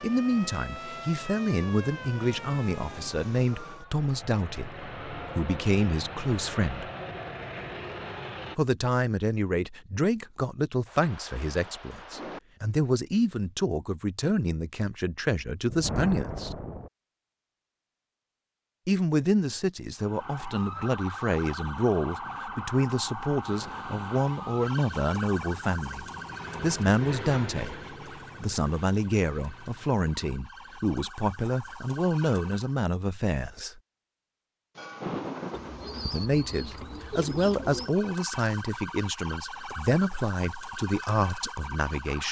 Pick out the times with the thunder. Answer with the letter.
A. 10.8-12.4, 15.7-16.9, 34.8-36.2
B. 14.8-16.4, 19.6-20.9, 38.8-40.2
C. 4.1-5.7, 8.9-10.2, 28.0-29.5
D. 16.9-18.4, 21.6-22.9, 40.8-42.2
A.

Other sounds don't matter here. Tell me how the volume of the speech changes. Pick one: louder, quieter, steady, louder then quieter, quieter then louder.
steady.